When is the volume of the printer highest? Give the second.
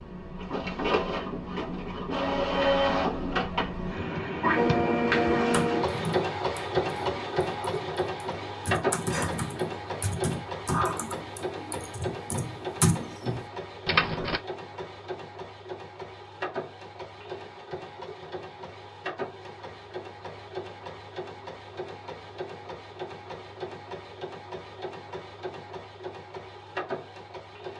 5 s.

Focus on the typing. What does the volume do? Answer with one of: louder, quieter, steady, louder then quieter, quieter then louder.
quieter then louder.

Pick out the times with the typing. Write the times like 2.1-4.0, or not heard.
4.0-14.4.